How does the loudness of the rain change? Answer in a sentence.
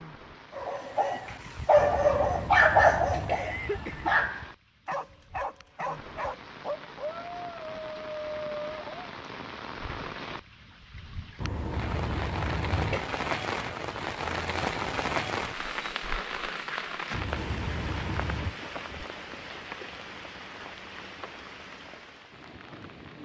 The volume of the rain goes up, then down.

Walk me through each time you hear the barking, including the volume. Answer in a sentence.
You can hear the barking from 0.6 to 9.1 s, getting quieter.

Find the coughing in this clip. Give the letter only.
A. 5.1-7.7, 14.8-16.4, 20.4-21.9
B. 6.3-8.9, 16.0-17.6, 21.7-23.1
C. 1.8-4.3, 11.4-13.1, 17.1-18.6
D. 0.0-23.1
C.